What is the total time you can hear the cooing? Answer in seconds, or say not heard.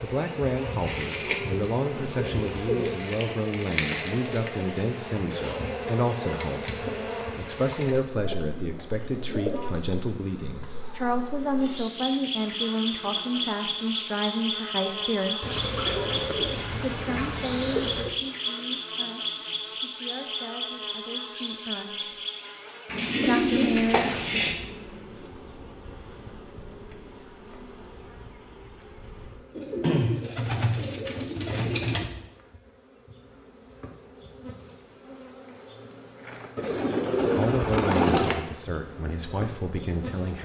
12 s.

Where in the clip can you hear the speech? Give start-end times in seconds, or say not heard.
0.0-15.6, 16.8-22.2, 23.2-24.1, 37.4-40.4.